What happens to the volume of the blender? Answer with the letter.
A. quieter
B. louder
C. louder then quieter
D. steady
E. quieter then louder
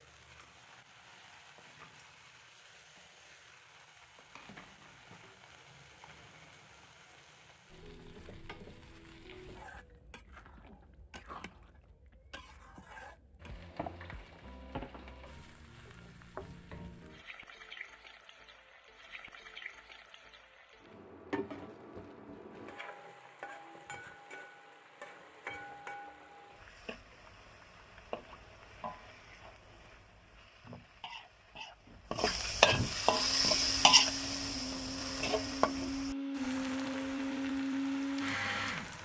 B.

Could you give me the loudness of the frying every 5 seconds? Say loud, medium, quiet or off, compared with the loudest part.
quiet, quiet, quiet, quiet, quiet, quiet, loud, medium.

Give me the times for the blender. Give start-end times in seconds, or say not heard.
33.1-38.9.